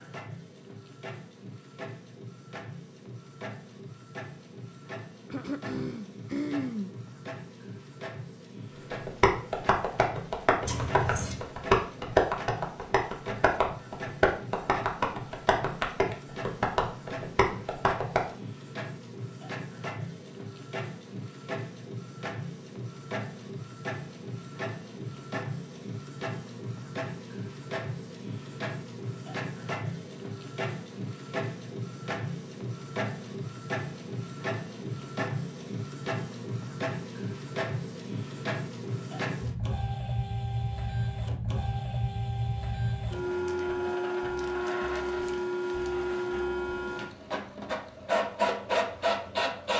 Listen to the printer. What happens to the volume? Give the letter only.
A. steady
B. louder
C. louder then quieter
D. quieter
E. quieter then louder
B.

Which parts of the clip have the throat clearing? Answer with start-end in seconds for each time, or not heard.
5.3-6.9.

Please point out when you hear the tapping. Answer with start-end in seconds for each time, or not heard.
8.9-18.2.